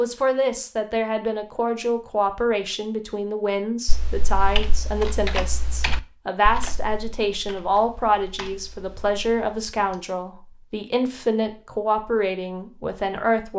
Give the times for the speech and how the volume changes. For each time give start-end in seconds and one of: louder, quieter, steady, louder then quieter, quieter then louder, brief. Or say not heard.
0.0-13.5 steady.